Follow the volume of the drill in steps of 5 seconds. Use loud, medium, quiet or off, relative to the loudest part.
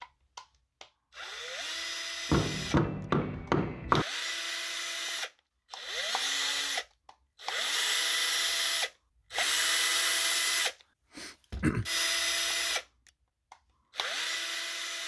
medium, loud, loud.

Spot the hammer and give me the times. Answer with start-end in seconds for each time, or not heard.
2.3-4.0.